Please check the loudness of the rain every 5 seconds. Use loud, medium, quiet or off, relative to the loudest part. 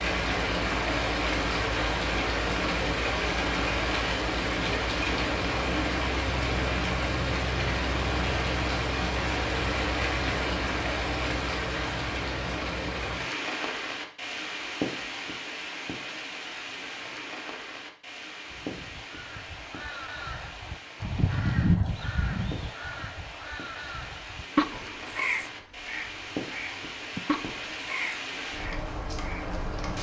loud, loud, loud, medium, quiet, medium.